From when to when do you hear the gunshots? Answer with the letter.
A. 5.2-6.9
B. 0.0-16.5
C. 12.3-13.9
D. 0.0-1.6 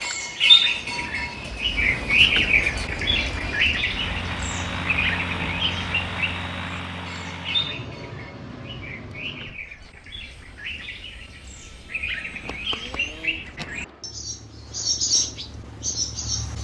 C.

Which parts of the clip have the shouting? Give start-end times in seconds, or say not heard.
not heard.